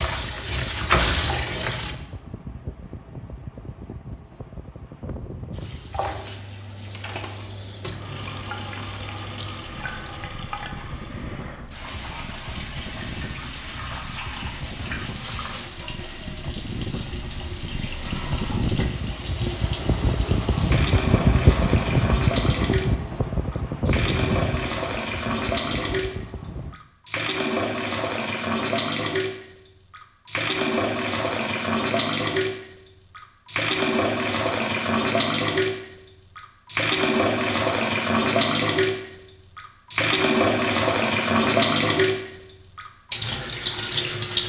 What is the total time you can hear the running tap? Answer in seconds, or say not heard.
41 s.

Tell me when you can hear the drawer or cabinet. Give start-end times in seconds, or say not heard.
not heard.